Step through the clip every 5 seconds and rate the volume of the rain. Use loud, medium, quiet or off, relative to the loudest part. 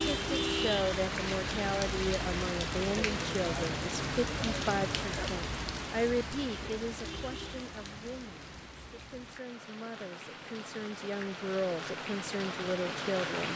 loud, medium, medium.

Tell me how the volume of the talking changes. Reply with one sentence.
The loudness of the talking goes down, then up.